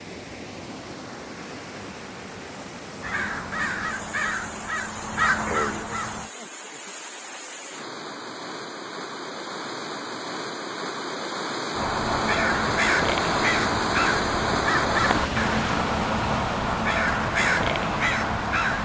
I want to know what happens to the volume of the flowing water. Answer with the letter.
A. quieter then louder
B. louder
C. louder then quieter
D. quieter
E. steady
B.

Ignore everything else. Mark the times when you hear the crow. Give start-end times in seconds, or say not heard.
3.0-6.3, 11.7-18.8.